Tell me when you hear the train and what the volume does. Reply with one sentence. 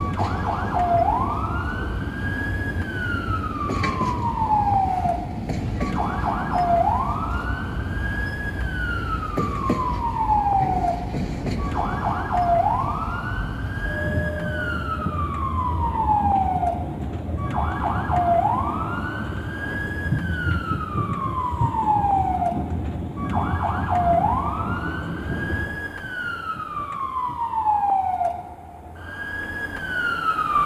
The train can be heard from 0.0 to 30.6 s, getting quieter.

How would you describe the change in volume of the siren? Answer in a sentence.
The loudness of the siren stays about the same.